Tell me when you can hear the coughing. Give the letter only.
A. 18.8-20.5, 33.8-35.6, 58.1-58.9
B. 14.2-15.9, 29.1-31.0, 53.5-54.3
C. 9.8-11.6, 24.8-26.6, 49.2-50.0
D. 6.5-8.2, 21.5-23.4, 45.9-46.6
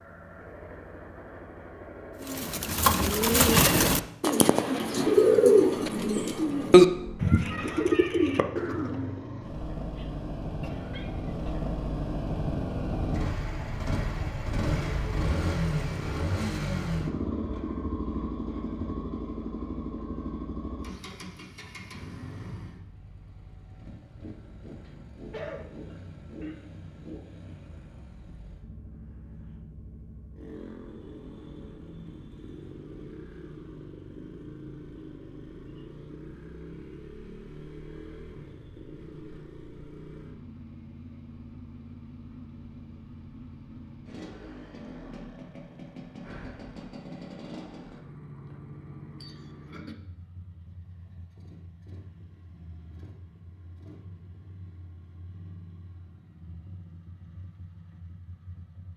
C.